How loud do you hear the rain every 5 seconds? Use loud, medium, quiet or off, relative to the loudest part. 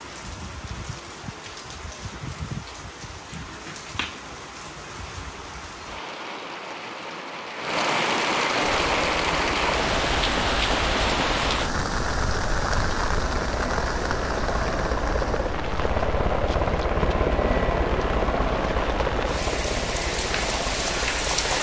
medium, loud, loud, medium, loud.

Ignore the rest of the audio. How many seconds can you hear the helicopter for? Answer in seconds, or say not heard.
13 s.